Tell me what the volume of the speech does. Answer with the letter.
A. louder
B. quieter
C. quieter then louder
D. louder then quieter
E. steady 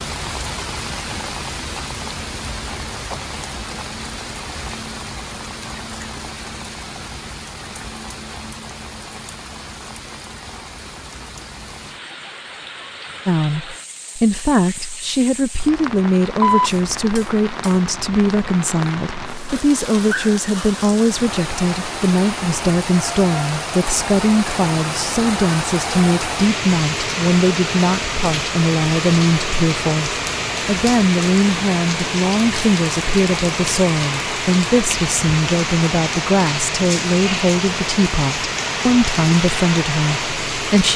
E.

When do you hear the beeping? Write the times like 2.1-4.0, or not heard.
15.8-17.8.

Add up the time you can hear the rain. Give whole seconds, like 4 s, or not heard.
41 s.